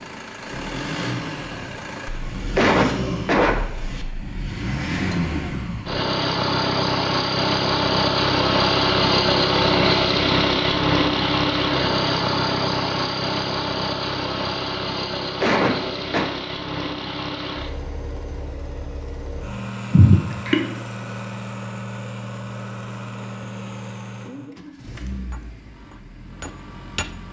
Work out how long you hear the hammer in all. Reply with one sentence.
The hammer can be heard for 2 seconds in total.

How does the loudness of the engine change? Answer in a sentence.
The volume of the engine goes up, then down.